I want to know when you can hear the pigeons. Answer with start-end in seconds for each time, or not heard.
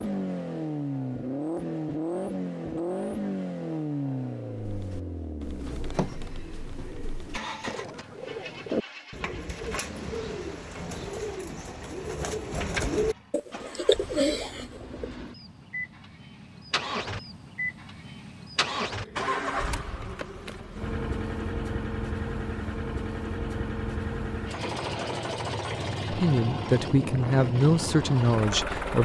4.5-15.1.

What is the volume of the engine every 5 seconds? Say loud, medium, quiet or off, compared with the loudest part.
loud, medium, quiet, loud, loud, loud.